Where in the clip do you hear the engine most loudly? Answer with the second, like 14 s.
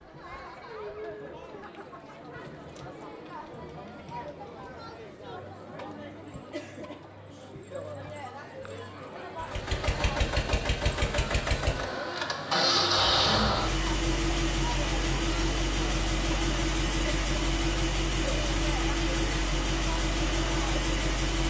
13 s.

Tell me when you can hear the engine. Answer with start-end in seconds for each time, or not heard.
9.3-21.4.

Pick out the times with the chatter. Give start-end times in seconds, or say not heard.
0.0-21.1.